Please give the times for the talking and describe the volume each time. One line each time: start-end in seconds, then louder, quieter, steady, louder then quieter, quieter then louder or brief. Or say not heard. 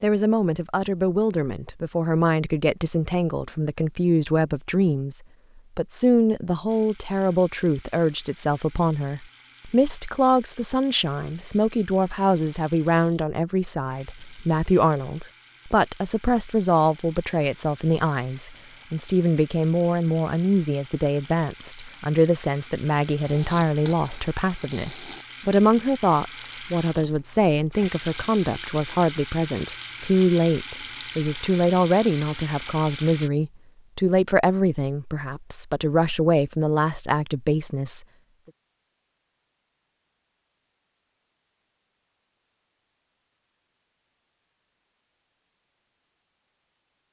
0.0-38.0 steady.